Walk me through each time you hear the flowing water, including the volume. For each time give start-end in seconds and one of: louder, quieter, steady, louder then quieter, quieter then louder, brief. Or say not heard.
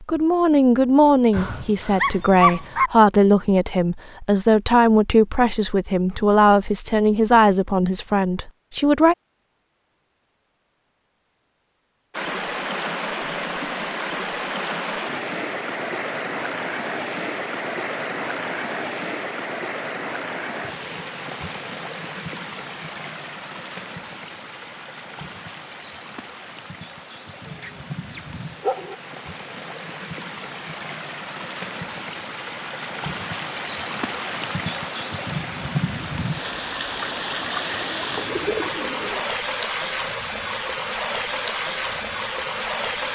12.1-43.1 quieter then louder.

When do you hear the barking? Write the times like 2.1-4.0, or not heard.
1.3-2.9, 27.6-28.9.